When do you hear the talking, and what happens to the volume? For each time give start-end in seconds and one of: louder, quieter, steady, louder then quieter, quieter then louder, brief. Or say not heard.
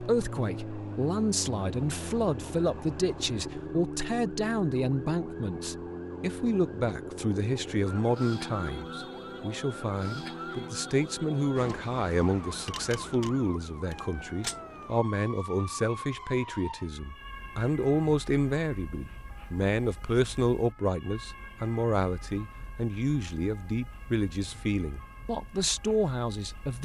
0.0-26.7 steady.